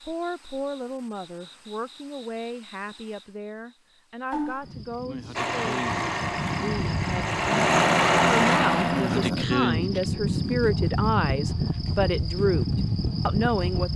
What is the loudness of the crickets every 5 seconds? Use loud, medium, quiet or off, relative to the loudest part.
quiet, loud, loud.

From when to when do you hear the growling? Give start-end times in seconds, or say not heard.
7.5-9.4.